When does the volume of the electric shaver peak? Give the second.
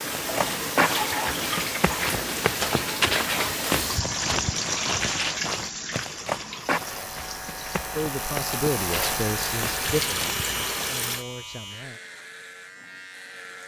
9 s.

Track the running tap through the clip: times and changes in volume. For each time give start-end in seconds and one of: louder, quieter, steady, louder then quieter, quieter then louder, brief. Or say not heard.
0.0-11.2 quieter then louder.